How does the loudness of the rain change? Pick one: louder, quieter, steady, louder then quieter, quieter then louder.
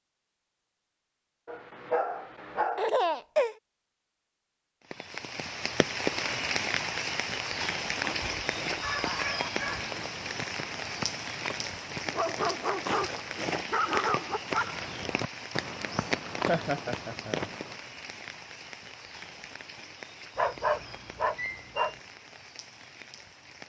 quieter.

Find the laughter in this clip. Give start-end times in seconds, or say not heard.
2.8-3.5, 8.9-9.7, 16.4-17.5.